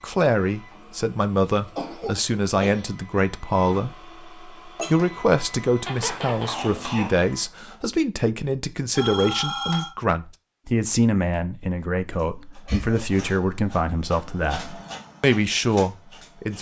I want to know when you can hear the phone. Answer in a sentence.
The phone can be heard from 8.9 to 9.9 s.